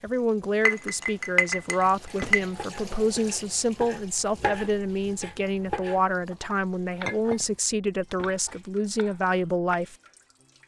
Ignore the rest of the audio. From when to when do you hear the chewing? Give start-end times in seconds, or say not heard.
not heard.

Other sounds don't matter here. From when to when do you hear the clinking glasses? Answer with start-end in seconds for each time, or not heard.
0.7-2.4, 7.0-7.5.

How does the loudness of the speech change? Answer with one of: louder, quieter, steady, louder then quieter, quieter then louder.
steady.